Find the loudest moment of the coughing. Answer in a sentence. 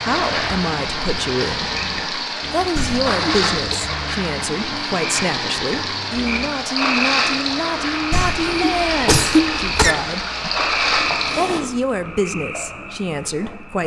The loudest moment of the coughing is at 9 seconds.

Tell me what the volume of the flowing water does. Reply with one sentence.
The loudness of the flowing water stays about the same.